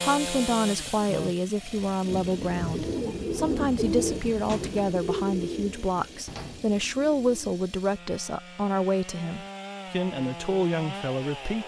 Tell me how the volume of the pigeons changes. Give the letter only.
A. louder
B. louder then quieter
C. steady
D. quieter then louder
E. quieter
B.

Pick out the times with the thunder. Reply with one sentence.
The thunder can be heard from 1.9 to 3.1 s.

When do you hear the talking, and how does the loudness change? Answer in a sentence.
You can hear the talking from 0.0 to 11.6 s, at a steady volume.